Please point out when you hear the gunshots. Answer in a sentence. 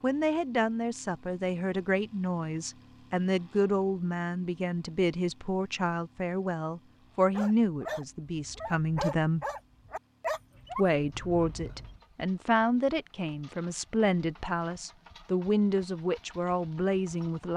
You can't hear the gunshots here.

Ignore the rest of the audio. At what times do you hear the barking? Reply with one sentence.
You can hear the barking from 7.2 to 12.0 s.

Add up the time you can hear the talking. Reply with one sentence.
The talking can be heard for 16 seconds in total.